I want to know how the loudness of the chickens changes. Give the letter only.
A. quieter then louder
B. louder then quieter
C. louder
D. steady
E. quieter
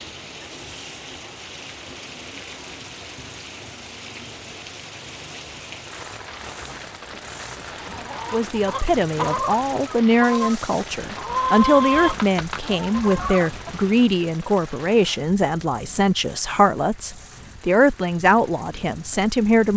B.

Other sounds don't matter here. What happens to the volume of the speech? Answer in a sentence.
The loudness of the speech stays about the same.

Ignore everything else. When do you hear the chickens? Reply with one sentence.
You can hear the chickens from 6.5 to 13.8 s.